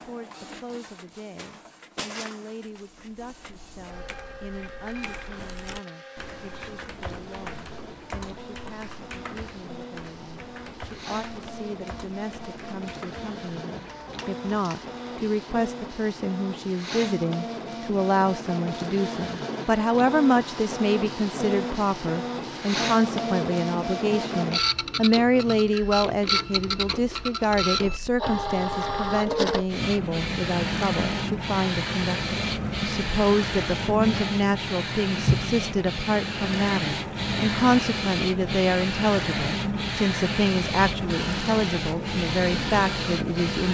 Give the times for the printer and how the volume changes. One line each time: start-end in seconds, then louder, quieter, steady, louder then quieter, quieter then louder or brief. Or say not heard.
0.0-43.7 louder.